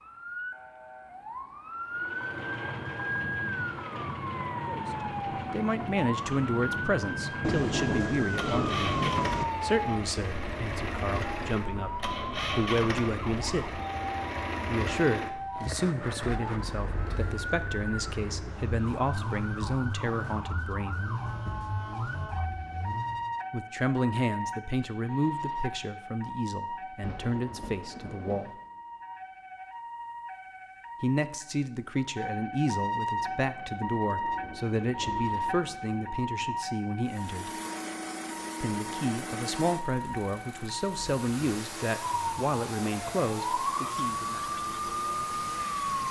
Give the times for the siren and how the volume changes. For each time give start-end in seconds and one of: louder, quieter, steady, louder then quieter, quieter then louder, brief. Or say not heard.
0.0-46.0 steady.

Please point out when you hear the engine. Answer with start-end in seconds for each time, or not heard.
1.9-23.3, 37.0-46.0.